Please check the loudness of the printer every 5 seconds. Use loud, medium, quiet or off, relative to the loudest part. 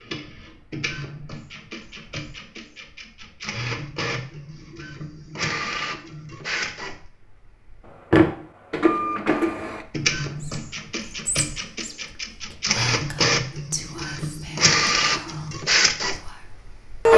quiet, medium, medium, loud.